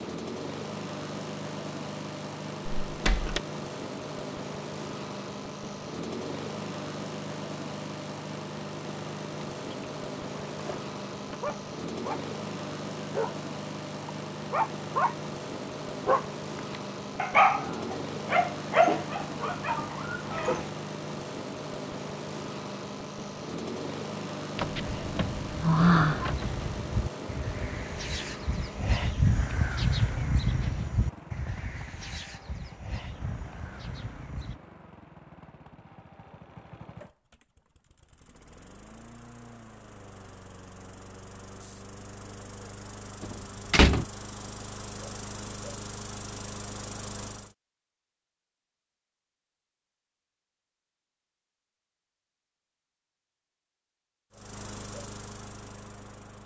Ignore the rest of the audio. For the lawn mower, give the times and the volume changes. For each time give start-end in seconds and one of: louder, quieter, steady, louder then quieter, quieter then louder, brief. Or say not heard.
0.0-47.5 quieter
54.3-56.4 brief.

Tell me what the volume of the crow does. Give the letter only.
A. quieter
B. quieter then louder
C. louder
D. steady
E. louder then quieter
E.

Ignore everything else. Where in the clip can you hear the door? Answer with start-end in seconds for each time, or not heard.
2.9-3.4, 24.6-26.4, 43.2-44.0.